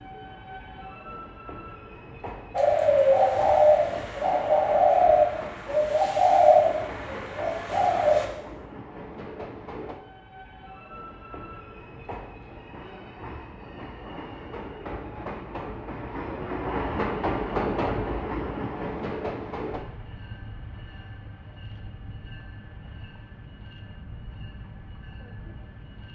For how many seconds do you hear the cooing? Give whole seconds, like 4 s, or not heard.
6 s.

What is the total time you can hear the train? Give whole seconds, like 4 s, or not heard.
26 s.